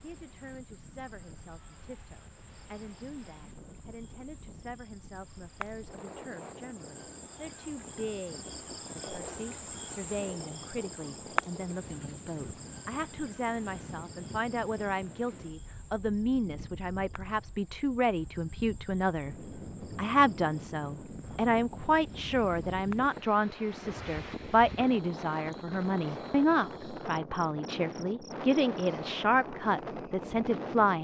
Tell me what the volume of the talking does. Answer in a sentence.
The loudness of the talking goes up.